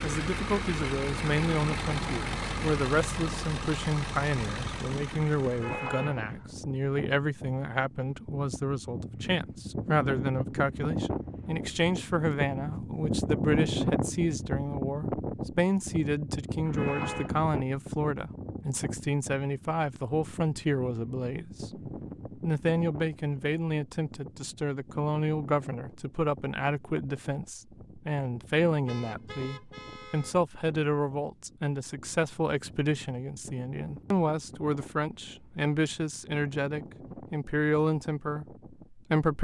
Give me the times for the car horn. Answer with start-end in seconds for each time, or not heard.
5.5-6.5, 16.6-17.4, 28.9-30.4.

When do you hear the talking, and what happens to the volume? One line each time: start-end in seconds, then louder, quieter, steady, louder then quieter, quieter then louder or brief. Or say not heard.
0.0-39.3 steady.